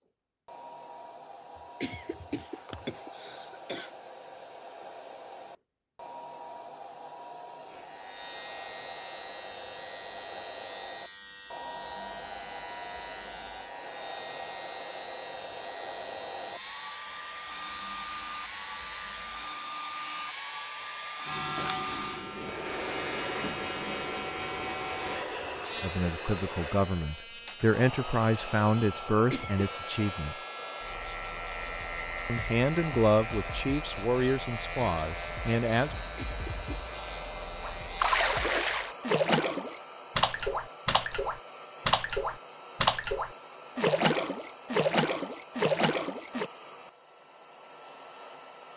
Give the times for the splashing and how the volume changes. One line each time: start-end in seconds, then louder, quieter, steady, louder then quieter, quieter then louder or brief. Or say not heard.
37.6-46.5 steady.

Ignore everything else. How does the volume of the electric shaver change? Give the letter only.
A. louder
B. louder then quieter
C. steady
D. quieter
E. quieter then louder
C.